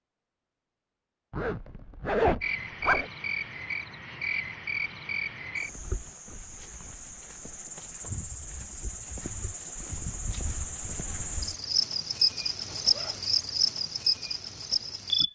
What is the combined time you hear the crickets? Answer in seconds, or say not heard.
13 s.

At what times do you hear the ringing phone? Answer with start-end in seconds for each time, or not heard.
not heard.